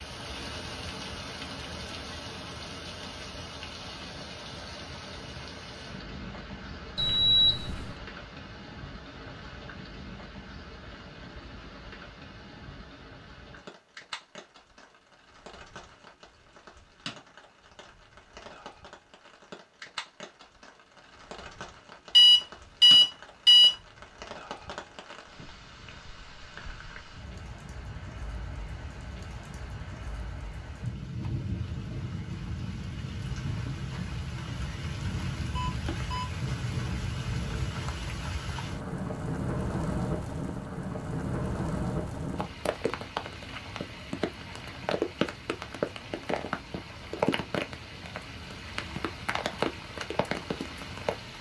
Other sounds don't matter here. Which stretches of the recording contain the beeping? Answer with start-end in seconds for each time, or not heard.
7.0-7.8, 22.1-23.7, 35.5-36.3.